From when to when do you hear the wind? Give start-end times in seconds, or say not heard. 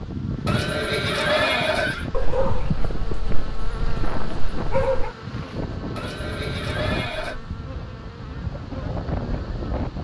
0.0-9.9.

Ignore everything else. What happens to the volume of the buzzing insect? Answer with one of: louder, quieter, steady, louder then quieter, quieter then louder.
quieter.